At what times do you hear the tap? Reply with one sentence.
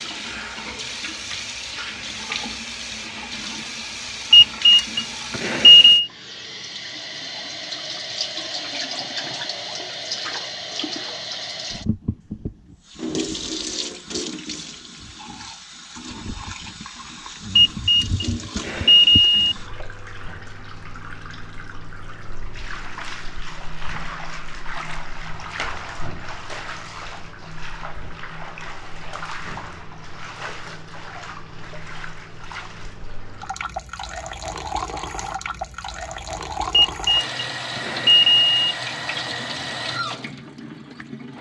You can hear the tap from 0.0 to 41.3 s.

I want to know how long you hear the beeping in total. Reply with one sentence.
The beeping can be heard for 6 seconds in total.